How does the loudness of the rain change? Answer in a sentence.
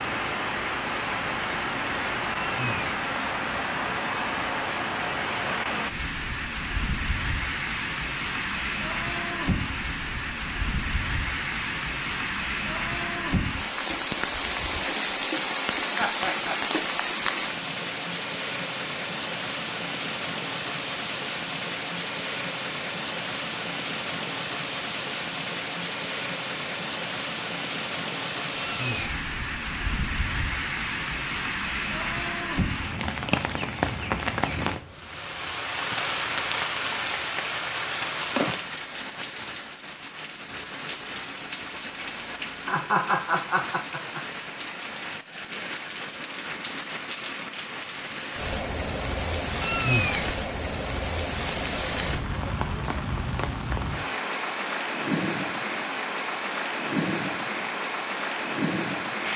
The volume of the rain stays about the same.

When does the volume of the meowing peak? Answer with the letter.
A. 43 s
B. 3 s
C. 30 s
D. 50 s
D.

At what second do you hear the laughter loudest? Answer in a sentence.
The volume of the laughter peaks at 43 seconds.